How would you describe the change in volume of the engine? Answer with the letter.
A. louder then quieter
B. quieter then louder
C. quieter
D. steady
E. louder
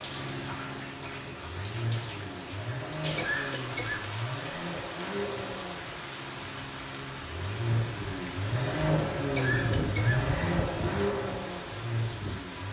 E.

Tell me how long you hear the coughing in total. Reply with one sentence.
The coughing can be heard for 2 seconds in total.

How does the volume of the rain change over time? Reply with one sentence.
The loudness of the rain stays about the same.